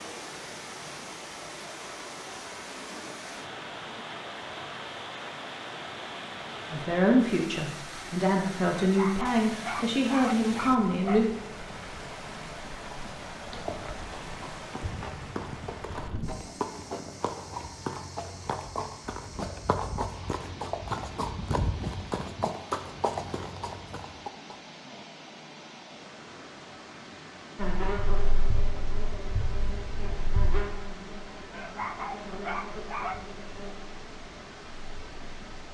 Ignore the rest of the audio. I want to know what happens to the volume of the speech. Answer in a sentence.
The volume of the speech stays about the same.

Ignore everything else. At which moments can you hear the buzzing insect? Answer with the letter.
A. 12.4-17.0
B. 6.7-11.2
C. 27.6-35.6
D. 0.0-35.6
C.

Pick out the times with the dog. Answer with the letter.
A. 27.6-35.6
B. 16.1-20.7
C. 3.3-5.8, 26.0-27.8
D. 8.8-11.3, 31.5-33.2
D.